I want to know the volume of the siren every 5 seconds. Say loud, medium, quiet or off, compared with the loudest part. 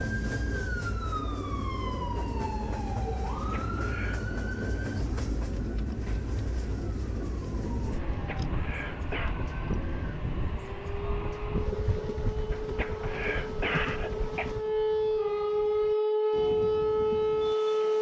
quiet, quiet, medium, loud.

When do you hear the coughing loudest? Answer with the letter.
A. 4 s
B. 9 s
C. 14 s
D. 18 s
C.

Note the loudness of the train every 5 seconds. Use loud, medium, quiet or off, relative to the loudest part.
loud, loud, loud, medium.